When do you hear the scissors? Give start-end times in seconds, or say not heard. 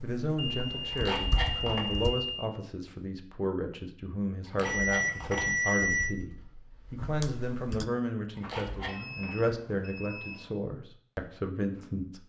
0.9-1.9, 4.5-5.8, 8.3-9.2.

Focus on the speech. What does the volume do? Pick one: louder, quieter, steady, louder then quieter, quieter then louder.
steady.